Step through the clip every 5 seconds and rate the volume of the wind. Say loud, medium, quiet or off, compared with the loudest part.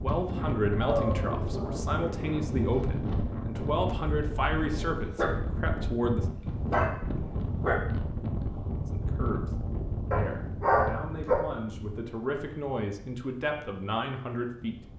loud, loud, medium.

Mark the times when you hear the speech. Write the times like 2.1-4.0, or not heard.
0.0-6.2, 8.9-14.8.